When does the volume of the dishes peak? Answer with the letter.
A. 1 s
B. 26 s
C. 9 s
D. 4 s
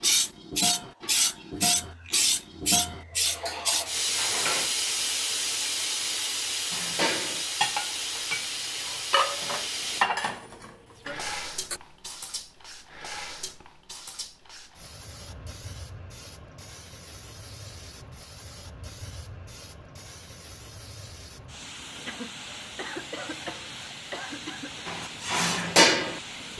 B.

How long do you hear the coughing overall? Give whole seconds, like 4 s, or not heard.
3 s.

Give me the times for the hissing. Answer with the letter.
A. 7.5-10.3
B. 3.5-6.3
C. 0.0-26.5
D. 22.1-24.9
C.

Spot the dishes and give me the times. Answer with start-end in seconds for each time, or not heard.
0.0-4.7, 6.7-11.8, 24.9-26.5.